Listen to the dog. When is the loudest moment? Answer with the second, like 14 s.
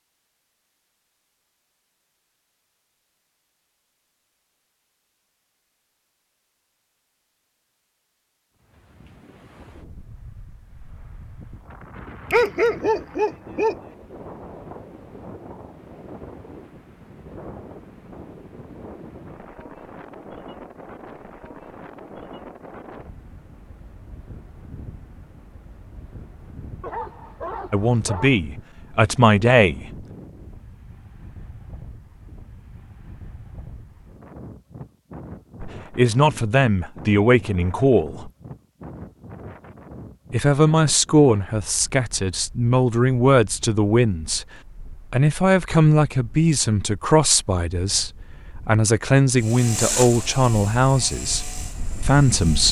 13 s.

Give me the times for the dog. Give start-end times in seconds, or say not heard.
12.3-13.8, 26.8-28.4.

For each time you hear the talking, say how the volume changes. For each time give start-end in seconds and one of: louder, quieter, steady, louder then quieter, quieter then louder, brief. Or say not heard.
27.7-29.9 brief
35.6-38.3 brief
40.3-52.6 steady.